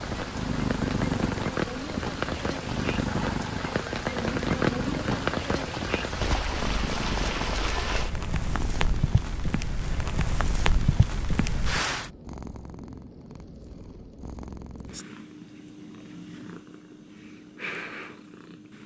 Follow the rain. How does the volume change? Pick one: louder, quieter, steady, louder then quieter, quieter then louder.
steady.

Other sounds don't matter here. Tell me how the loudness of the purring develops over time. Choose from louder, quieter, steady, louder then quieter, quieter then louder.
quieter.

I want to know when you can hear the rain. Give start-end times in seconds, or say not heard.
0.0-12.1.